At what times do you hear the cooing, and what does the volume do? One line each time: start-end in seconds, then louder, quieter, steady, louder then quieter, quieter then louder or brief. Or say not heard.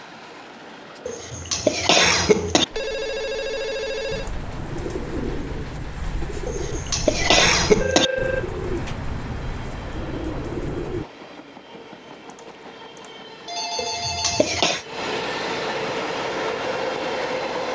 4.1-11.1 steady.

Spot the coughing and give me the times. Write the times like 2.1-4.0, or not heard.
1.1-2.6, 6.5-8.1, 13.8-14.8.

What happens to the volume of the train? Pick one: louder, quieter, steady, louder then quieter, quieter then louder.
louder.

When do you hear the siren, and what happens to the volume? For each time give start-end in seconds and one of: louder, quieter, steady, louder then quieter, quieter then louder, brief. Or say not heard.
not heard.